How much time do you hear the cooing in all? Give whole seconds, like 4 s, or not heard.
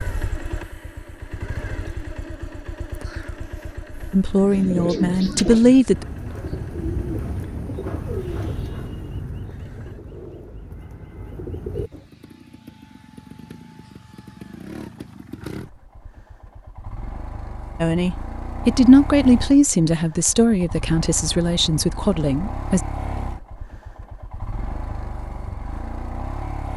8 s.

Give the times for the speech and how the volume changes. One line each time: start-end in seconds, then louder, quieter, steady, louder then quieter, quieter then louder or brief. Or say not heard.
4.1-6.0 brief
17.8-22.8 quieter.